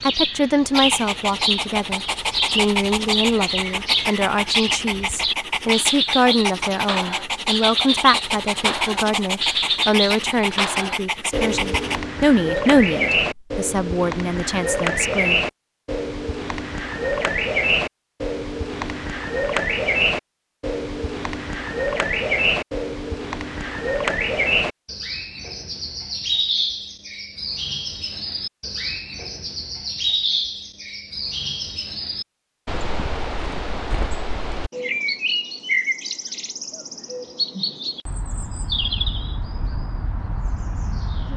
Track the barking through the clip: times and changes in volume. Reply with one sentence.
The barking can be heard from 0.7 to 12.0 s, at a steady volume.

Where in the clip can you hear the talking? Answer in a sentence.
You can hear the talking from 0.0 to 15.4 s.